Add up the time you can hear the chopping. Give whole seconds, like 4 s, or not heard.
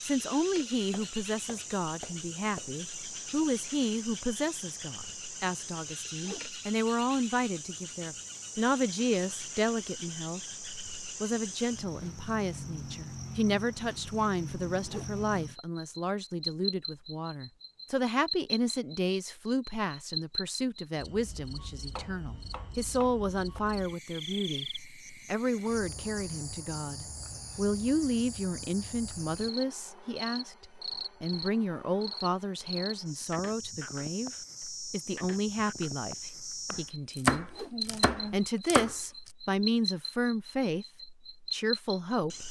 6 s.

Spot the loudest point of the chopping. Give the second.
37 s.